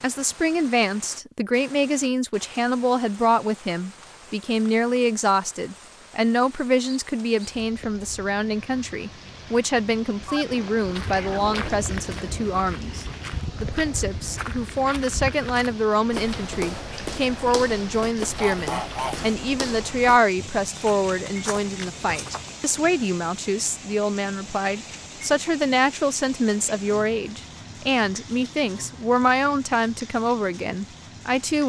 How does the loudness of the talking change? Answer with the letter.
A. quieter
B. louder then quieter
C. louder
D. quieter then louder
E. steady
E.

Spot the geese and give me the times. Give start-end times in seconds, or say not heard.
10.2-11.7, 18.4-19.3.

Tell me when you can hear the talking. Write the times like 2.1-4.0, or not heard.
0.0-31.6.